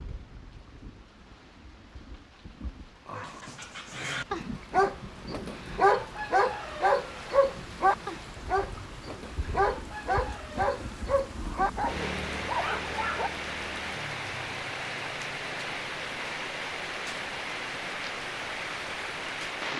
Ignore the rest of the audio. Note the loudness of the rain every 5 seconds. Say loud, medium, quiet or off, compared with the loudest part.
quiet, medium, loud, loud.